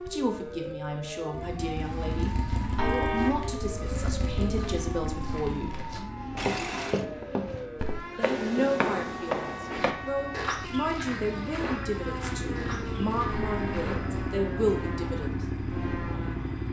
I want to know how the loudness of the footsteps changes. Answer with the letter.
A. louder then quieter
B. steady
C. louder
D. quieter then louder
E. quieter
A.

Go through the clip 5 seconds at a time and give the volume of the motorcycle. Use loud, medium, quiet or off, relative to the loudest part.
loud, medium, loud, loud.